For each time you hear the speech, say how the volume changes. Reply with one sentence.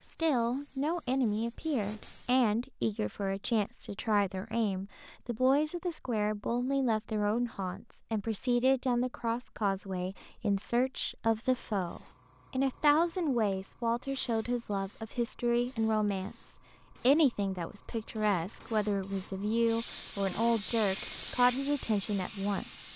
The speech can be heard from 0.1 to 22.9 s, at a steady volume.